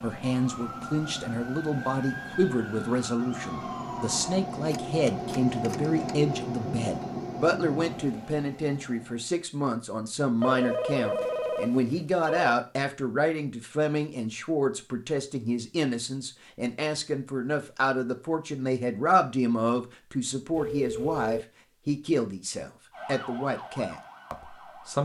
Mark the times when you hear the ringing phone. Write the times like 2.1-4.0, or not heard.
4.7-6.0, 10.4-12.6, 20.5-21.4.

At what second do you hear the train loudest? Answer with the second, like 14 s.
6 s.